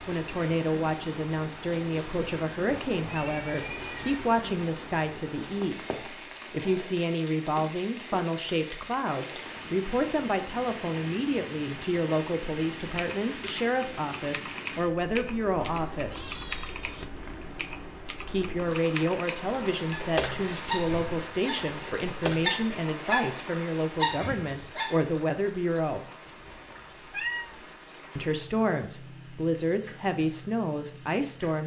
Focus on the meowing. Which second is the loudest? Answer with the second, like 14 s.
27 s.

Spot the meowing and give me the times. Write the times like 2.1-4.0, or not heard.
2.9-4.2, 15.7-17.1, 26.2-27.6.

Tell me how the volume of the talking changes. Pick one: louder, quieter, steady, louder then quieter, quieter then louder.
steady.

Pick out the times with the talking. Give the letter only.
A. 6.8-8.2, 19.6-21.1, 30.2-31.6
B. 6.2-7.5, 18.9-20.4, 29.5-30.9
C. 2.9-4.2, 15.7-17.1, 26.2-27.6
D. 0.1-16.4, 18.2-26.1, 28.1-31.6
D.